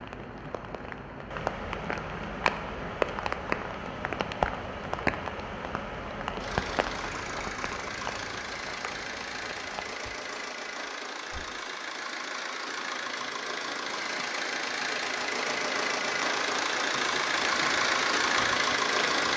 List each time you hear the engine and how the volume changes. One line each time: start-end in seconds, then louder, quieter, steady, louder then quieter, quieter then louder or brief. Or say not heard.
6.4-19.3 louder.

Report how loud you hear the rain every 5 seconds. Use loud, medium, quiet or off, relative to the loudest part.
loud, loud, quiet, medium.